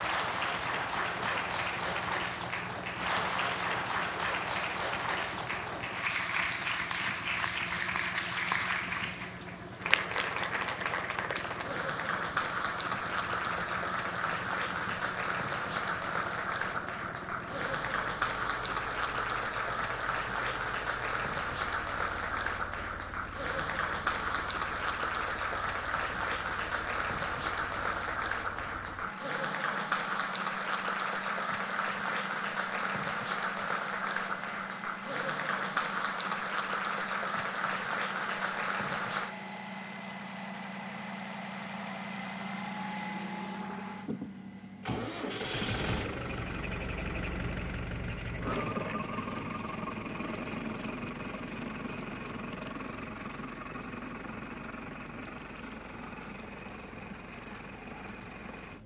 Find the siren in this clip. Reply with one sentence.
The siren can't be heard in this clip.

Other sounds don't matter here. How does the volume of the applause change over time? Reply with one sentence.
The loudness of the applause stays about the same.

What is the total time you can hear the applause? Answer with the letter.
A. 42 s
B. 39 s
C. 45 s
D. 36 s
B.